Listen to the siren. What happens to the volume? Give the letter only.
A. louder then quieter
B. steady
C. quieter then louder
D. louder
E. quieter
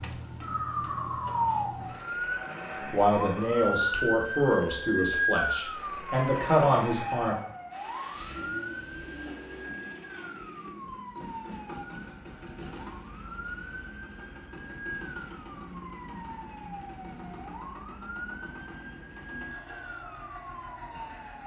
E.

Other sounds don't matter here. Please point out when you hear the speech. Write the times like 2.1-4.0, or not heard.
2.9-7.3.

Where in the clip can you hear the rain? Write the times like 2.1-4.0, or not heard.
not heard.